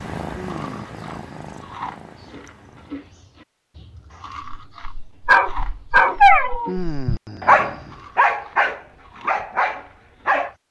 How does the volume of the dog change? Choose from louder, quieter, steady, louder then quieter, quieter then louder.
quieter.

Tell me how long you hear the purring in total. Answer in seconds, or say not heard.
3 s.